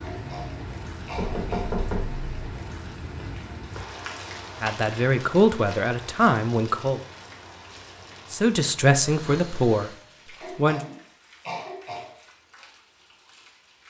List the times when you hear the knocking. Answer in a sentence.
The knocking can be heard from 1.1 to 2.2 s.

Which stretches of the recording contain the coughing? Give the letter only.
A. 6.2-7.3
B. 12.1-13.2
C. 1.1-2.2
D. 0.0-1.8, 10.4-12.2
D.